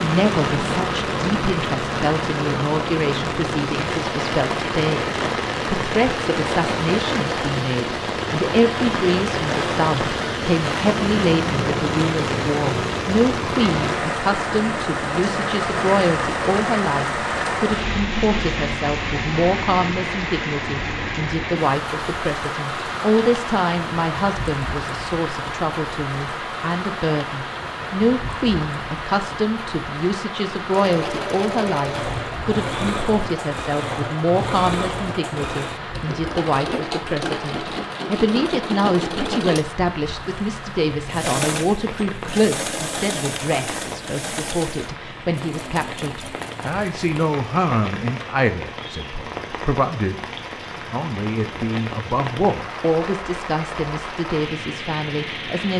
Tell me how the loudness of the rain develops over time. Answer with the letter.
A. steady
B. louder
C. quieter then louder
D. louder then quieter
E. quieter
E.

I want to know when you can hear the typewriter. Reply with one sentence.
You can't hear the typewriter here.